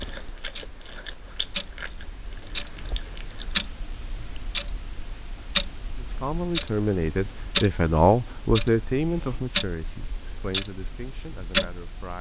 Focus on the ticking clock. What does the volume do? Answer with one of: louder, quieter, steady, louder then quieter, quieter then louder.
louder.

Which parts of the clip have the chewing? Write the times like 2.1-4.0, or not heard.
0.0-3.6.